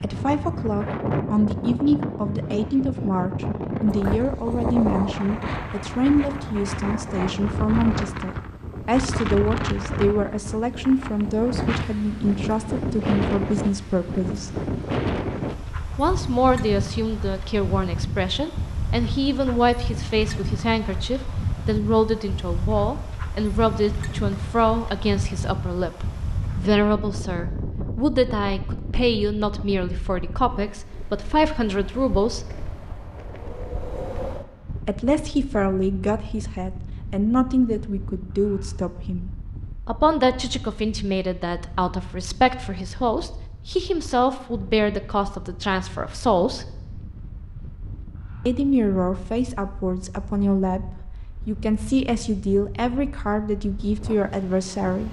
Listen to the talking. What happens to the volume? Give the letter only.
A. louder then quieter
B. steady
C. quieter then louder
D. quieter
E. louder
B.